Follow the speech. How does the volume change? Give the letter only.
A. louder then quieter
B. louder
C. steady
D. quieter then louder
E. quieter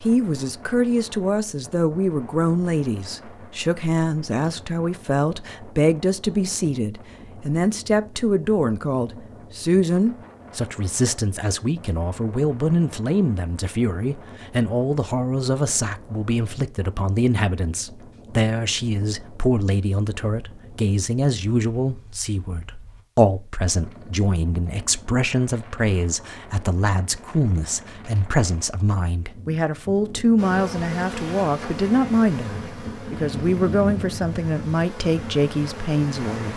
C.